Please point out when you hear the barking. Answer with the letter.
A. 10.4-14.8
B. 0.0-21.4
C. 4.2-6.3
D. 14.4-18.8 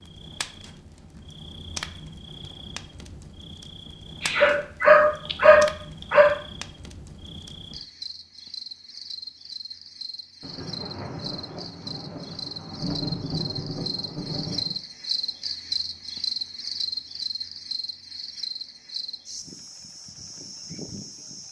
C.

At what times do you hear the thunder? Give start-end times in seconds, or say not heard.
10.4-14.8.